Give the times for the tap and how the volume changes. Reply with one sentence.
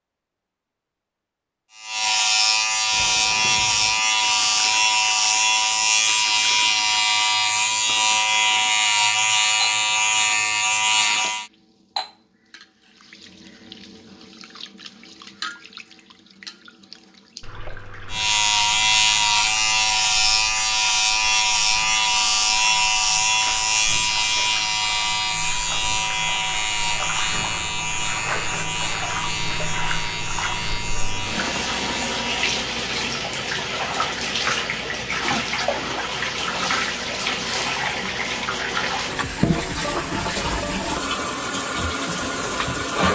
You can hear the tap from 2.9 to 43.1 s, getting louder.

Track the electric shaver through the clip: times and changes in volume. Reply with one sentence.
You can hear the electric shaver from 1.7 to 11.5 s, at a steady volume; and from 18.1 to 32.5 s, getting quieter.